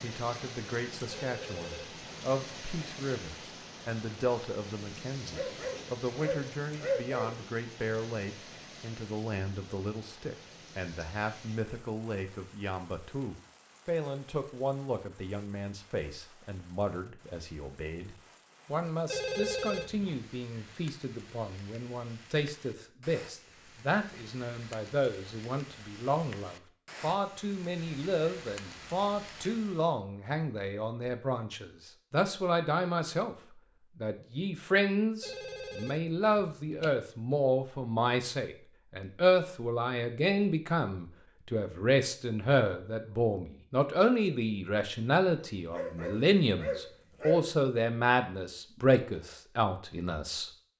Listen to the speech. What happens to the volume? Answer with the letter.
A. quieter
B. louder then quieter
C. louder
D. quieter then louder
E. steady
C.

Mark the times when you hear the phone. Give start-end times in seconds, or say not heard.
1.1-2.0, 19.1-20.2, 35.2-36.9.